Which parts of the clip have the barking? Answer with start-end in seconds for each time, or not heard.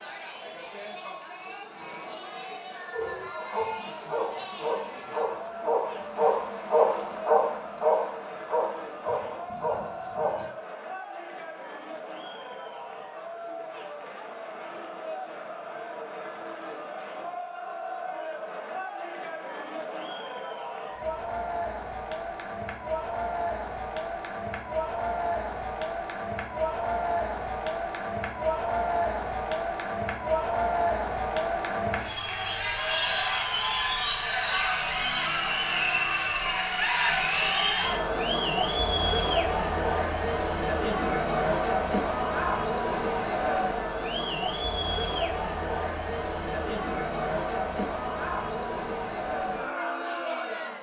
2.9-10.5.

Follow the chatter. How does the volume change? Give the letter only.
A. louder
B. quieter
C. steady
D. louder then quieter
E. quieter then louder
A.